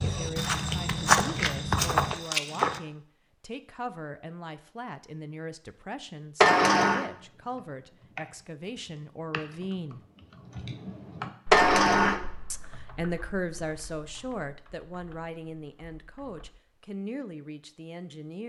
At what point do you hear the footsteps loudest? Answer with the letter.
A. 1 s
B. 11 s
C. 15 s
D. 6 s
A.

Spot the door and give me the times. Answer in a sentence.
You can hear the door from 6.4 to 7.0 s and from 11.5 to 12.2 s.